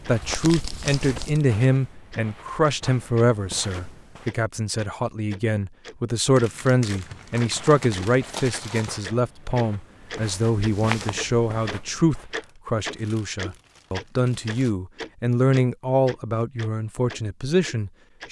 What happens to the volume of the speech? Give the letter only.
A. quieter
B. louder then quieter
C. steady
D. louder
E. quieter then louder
C.